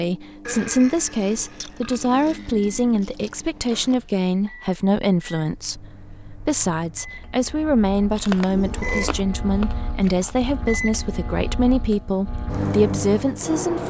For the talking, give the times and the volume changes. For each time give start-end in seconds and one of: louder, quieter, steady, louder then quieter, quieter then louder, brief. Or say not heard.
0.0-13.8 steady.